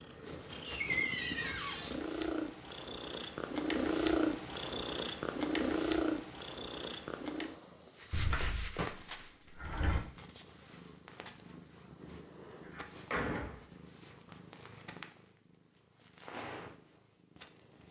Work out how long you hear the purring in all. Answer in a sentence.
You can hear the purring for 18 seconds altogether.